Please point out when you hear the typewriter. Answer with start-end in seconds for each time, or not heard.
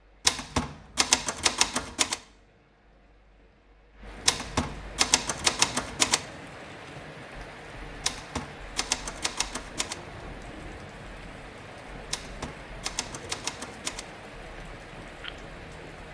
0.2-2.2, 4.2-6.2, 8.0-10.0, 12.1-14.1.